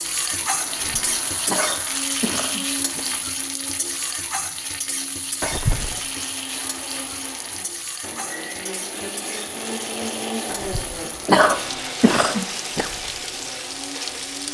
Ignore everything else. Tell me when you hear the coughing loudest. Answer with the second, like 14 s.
11 s.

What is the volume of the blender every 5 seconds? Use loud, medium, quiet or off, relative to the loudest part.
medium, loud, loud.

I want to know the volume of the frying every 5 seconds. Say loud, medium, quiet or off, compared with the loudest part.
loud, medium, medium.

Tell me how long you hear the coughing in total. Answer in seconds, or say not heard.
5 s.